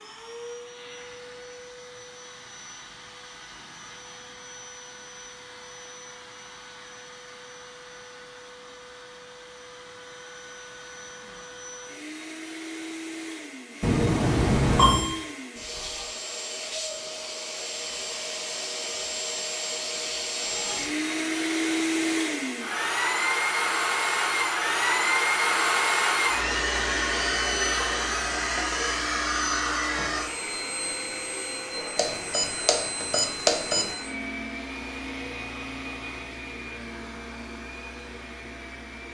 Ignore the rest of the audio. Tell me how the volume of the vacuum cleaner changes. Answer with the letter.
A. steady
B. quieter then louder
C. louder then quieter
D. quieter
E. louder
C.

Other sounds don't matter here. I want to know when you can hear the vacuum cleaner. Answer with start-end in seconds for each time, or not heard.
0.0-39.0.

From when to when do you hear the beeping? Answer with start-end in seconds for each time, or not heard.
13.8-15.2, 31.9-33.9.